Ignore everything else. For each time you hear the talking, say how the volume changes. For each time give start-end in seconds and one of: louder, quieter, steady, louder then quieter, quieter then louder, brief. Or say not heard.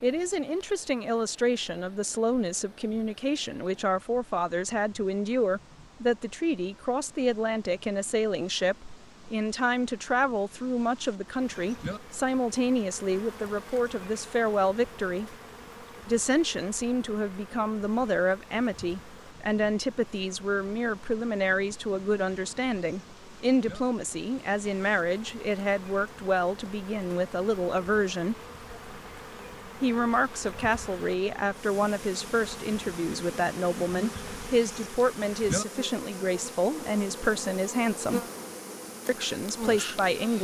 0.0-15.3 steady
16.1-28.4 steady
29.8-38.2 steady
39.0-40.3 brief.